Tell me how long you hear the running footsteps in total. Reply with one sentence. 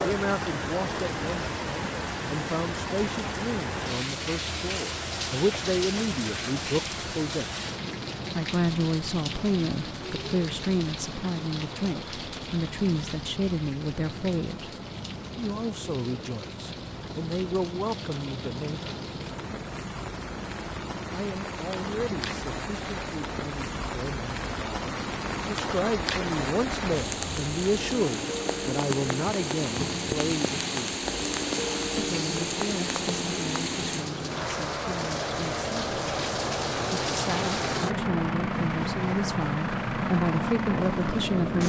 You can't hear the running footsteps here.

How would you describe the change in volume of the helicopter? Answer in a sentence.
The loudness of the helicopter goes up.